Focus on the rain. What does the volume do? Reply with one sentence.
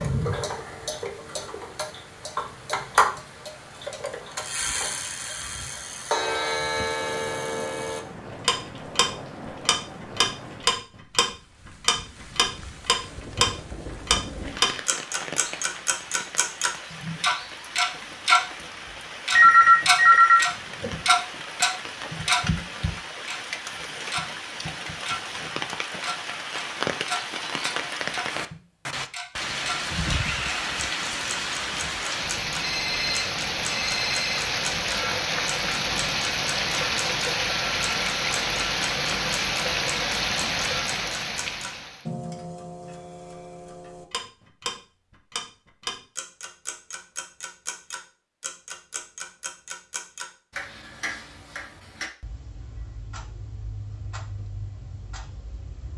The loudness of the rain goes up.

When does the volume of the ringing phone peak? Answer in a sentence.
The loudest moment of the ringing phone is at 20 seconds.